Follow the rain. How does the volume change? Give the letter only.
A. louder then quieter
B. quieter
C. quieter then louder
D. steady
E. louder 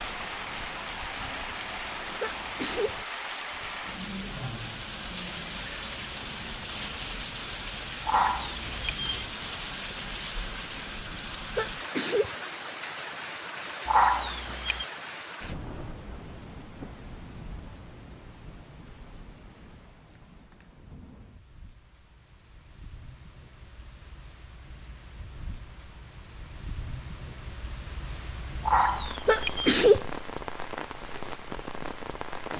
C.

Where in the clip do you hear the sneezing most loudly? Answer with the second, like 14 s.
30 s.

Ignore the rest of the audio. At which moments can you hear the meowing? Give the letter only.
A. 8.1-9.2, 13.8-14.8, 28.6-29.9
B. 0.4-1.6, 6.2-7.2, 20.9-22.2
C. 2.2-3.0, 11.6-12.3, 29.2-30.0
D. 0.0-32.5
A.